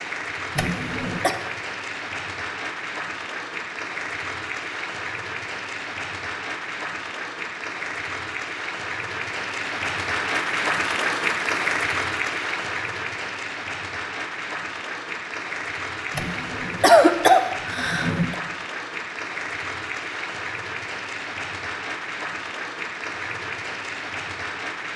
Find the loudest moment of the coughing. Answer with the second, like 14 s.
17 s.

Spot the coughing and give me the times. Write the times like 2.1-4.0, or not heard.
0.6-1.4, 16.1-18.4.